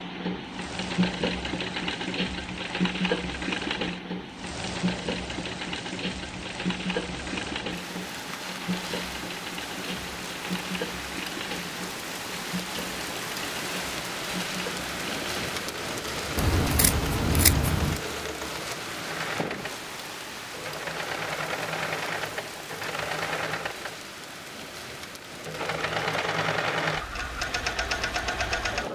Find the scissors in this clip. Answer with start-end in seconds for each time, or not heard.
16.4-18.0.